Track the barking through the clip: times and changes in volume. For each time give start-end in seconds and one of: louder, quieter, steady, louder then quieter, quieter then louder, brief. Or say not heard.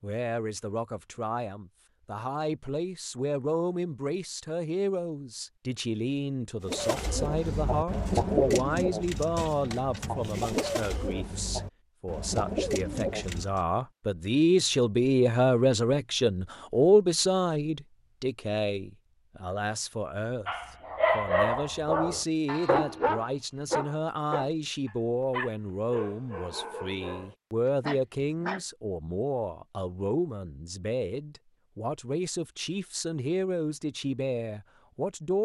20.4-28.6 quieter.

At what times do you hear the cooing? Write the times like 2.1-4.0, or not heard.
6.7-13.7.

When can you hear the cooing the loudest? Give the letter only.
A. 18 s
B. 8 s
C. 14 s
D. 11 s
B.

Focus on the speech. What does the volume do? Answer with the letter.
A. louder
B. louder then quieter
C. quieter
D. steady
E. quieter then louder
B.